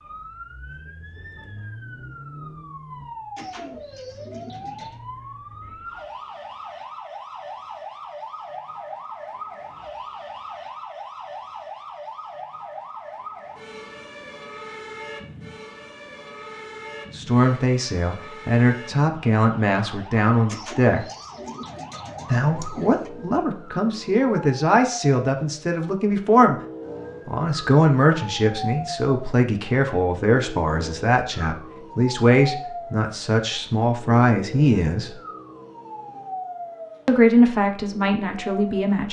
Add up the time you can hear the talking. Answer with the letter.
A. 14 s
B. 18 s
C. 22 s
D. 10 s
B.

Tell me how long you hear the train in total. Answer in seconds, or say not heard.
not heard.